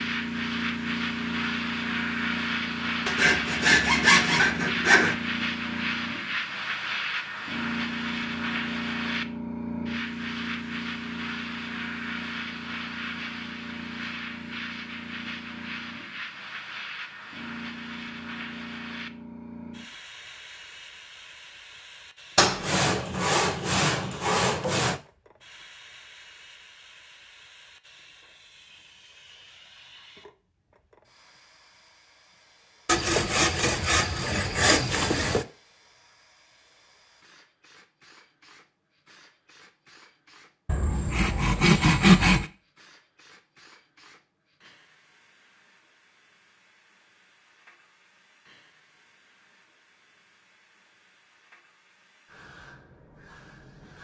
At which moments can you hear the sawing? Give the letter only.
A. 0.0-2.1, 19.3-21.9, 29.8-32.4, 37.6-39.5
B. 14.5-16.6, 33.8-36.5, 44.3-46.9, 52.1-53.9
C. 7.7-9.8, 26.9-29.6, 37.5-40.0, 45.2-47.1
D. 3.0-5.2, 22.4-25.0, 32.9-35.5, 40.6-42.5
D.